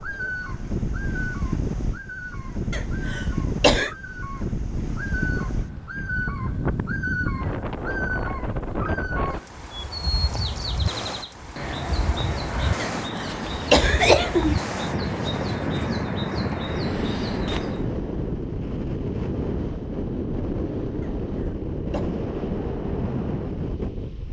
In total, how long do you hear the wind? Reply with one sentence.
You can hear the wind for 24 seconds altogether.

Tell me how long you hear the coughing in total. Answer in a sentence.
The coughing can be heard for 4 seconds in total.